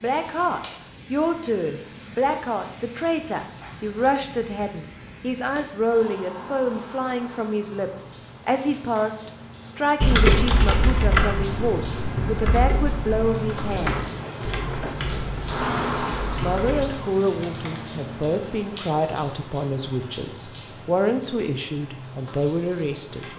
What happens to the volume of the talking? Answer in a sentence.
The loudness of the talking stays about the same.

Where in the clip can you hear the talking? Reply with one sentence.
You can hear the talking from 0.0 to 14.1 s and from 16.4 to 23.3 s.